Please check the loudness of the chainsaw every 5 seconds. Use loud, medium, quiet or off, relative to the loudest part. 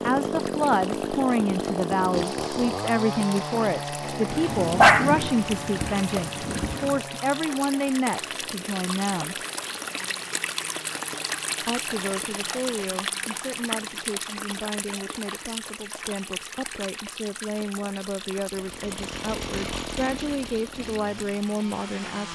loud, medium, quiet, medium, medium.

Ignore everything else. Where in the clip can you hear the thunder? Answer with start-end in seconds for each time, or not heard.
4.2-7.0.